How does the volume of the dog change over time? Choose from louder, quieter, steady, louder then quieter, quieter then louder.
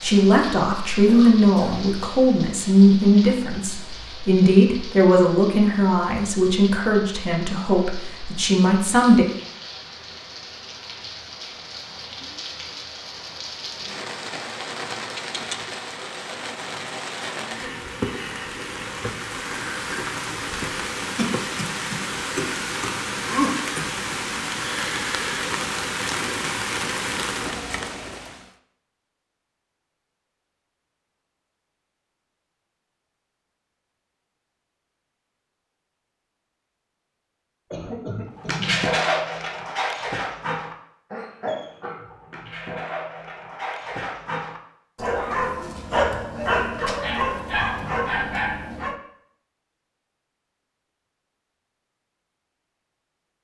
quieter then louder.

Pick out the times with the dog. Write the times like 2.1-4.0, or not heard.
38.4-49.0.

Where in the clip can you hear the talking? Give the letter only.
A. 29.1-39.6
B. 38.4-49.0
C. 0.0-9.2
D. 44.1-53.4
C.